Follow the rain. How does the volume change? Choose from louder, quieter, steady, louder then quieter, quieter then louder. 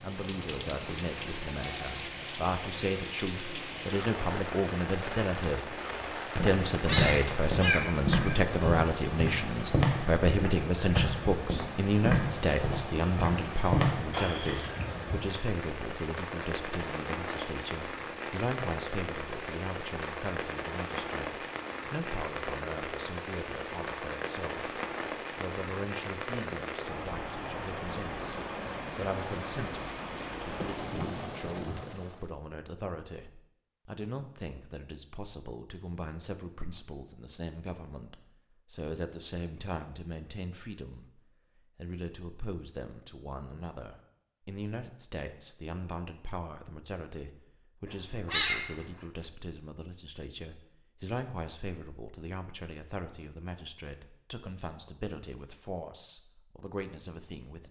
steady.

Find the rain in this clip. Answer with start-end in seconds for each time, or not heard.
0.0-32.3.